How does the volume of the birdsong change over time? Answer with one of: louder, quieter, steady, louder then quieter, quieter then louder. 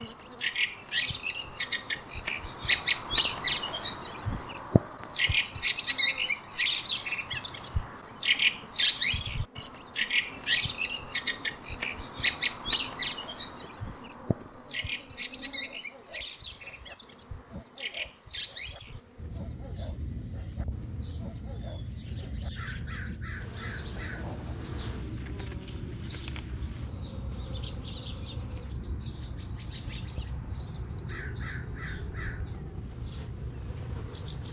quieter.